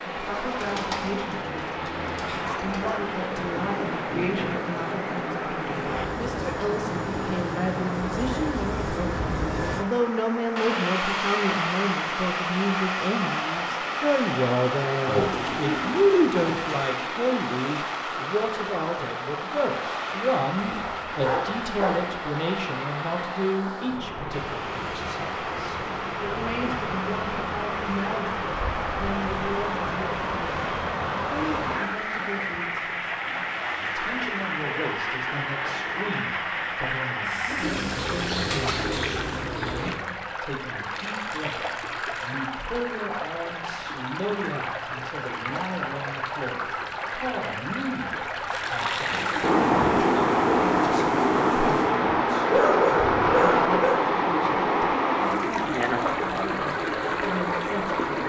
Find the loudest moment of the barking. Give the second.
53 s.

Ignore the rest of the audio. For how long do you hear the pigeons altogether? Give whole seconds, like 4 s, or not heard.
10 s.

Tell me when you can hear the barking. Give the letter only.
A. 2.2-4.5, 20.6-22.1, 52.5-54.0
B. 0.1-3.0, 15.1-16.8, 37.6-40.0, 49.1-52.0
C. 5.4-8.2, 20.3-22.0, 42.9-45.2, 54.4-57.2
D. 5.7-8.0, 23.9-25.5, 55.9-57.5
A.